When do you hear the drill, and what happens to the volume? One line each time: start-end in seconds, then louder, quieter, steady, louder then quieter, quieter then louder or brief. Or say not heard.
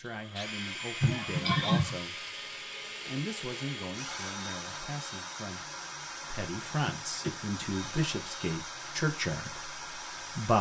0.0-10.5 steady.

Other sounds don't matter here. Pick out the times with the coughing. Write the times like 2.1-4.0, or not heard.
1.0-1.9, 6.8-7.7.